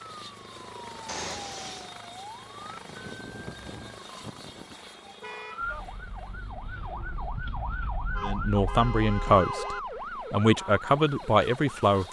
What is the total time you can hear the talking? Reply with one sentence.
You can hear the talking for 4 seconds altogether.